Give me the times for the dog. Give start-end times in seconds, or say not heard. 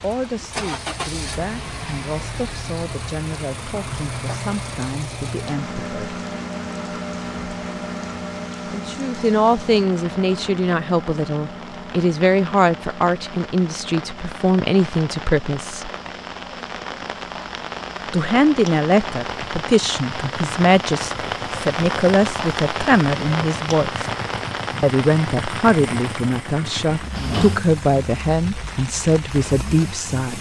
not heard.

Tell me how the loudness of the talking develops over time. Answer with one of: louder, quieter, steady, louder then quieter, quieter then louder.
louder.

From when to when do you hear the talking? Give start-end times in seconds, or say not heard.
0.0-6.2, 8.7-15.9, 18.1-24.1, 24.8-30.3.